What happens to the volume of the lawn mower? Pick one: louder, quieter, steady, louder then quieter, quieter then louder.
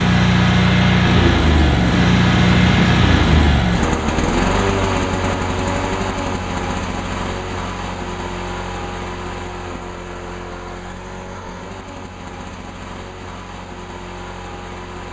quieter.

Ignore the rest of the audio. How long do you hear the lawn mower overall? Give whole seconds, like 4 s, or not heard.
15 s.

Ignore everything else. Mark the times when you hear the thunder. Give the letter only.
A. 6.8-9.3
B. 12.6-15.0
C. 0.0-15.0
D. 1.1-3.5
D.